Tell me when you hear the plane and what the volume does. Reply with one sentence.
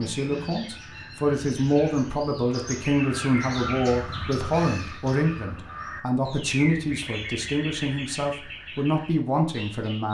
The plane can't be heard in this clip.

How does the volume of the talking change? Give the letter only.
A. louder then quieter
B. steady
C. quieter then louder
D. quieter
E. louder
B.